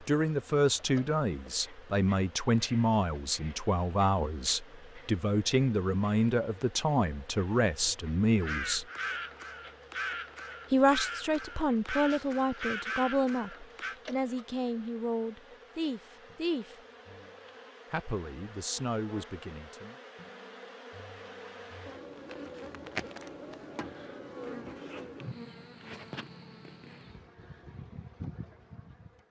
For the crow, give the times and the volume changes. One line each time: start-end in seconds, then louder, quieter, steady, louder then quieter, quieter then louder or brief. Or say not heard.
8.3-13.9 steady.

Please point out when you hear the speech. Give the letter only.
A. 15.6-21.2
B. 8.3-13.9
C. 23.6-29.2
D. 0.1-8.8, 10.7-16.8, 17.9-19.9
D.